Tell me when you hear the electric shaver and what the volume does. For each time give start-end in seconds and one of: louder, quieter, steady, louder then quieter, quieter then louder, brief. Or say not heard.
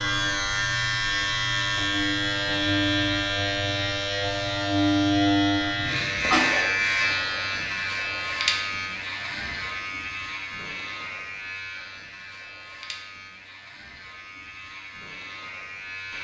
0.0-16.1 quieter.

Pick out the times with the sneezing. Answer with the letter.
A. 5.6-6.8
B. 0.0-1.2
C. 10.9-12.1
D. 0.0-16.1
A.